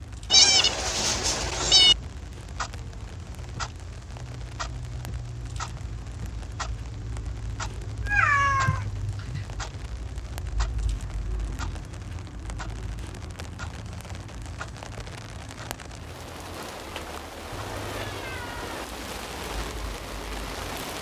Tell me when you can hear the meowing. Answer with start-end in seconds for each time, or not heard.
0.3-1.9, 8.1-9.4, 16.9-18.9.